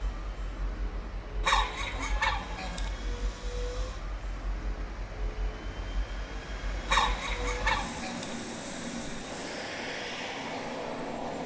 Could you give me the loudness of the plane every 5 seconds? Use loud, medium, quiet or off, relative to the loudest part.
medium, medium, loud.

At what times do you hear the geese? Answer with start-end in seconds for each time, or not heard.
1.4-2.9, 6.8-8.3.